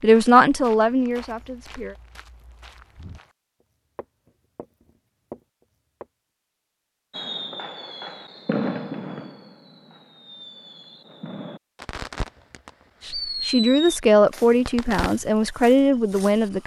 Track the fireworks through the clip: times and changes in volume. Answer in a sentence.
You can hear the fireworks from 7.1 to 15.2 s, getting quieter then louder.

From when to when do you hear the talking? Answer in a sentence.
The talking can be heard from 0.0 to 1.9 s and from 13.0 to 16.6 s.